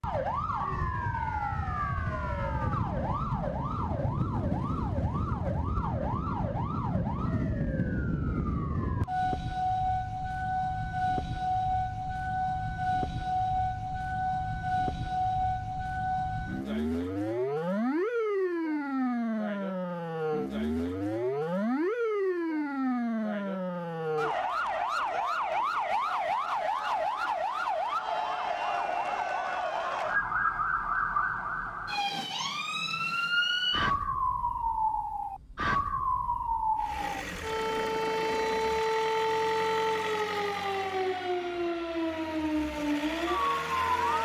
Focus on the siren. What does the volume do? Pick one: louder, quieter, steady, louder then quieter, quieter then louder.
steady.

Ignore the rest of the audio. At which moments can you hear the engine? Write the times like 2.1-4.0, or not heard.
36.8-44.1.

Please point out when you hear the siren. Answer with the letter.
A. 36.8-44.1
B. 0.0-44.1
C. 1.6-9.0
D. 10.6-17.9
B.